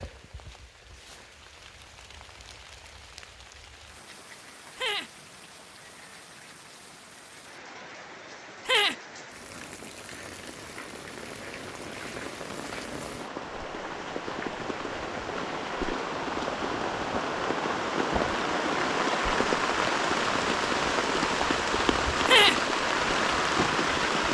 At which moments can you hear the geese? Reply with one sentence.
You can't hear the geese here.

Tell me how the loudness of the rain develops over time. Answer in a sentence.
The volume of the rain goes up.